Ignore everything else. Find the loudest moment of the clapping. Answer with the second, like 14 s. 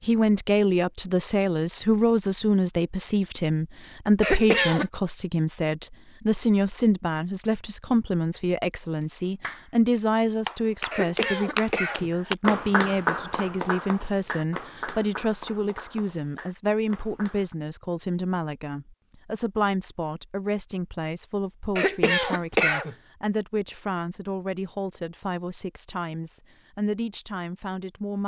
13 s.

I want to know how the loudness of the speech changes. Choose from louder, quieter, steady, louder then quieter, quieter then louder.
quieter.